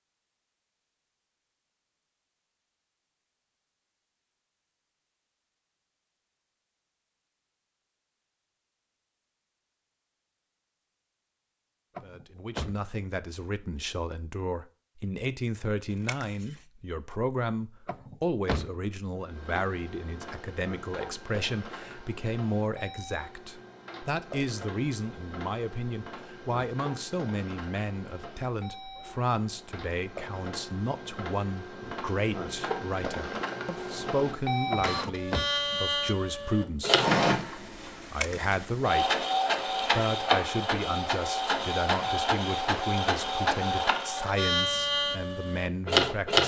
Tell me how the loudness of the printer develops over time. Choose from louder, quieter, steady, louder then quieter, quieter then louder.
louder.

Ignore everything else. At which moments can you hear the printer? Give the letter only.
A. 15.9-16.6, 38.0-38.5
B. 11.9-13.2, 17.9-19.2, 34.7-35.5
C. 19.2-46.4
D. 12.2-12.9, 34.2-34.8
C.